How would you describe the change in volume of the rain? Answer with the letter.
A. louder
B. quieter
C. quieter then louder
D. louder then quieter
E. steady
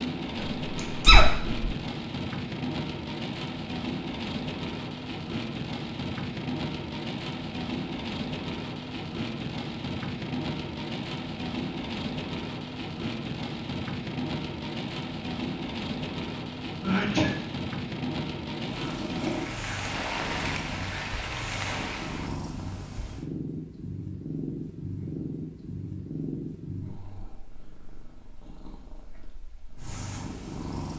E.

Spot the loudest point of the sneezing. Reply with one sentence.
The loudest moment of the sneezing is at 1 second.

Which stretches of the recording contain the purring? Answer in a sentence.
You can hear the purring from 18.6 to 30.9 s.